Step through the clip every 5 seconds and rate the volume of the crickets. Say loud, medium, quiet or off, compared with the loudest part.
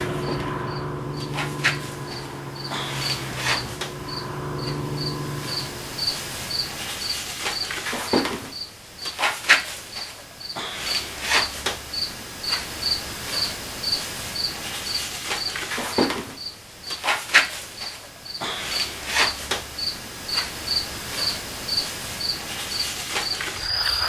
medium, loud, loud, loud, loud.